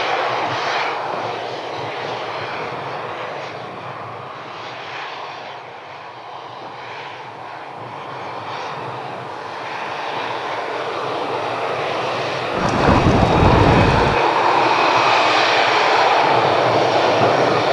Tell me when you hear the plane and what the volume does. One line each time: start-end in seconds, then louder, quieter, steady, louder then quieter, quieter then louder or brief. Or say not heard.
0.0-17.6 quieter then louder.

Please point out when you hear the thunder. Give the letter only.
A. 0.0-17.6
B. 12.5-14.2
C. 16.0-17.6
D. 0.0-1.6
B.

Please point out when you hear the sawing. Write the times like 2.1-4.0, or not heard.
not heard.